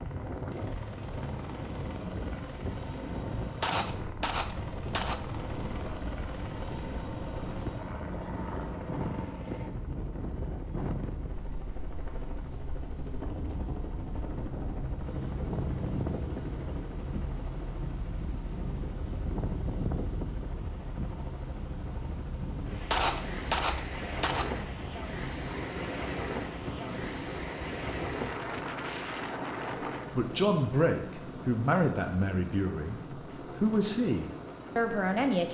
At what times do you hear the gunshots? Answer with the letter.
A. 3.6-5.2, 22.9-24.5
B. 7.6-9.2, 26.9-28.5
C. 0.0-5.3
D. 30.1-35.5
A.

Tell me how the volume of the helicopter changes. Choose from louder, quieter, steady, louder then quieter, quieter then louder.
steady.